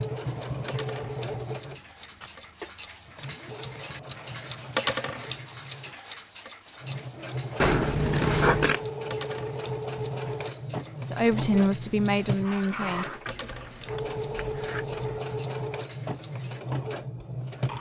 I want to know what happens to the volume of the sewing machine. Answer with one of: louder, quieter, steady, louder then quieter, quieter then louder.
quieter then louder.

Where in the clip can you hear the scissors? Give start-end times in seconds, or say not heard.
1.1-3.3, 7.5-8.8, 13.2-15.2.